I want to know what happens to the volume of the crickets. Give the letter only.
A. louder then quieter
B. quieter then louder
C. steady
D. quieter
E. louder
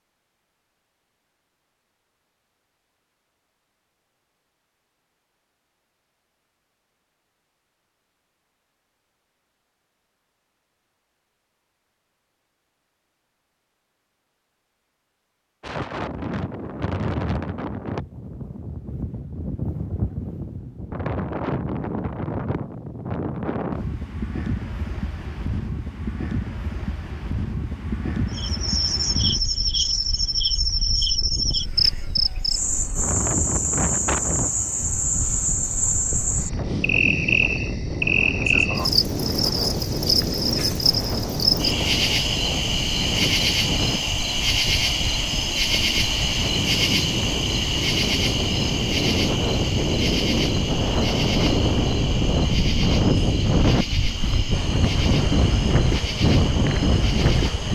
D.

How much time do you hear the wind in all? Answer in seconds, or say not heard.
42 s.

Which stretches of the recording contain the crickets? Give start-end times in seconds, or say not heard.
28.3-57.7.